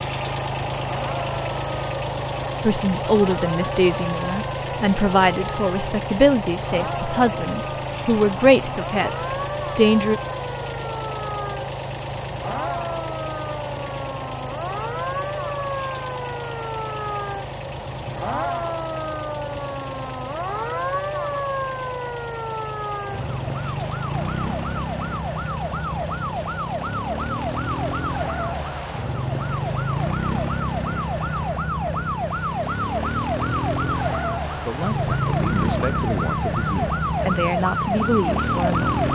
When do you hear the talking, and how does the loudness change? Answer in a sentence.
You can hear the talking from 2.6 to 10.2 s, at a steady volume; and from 34.5 to 39.0 s, getting louder.